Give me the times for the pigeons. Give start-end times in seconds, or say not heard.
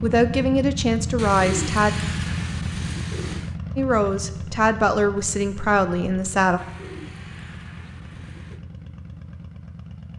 1.1-3.5, 6.5-8.6.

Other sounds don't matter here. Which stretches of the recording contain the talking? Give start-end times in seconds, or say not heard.
0.0-1.9, 3.8-6.6.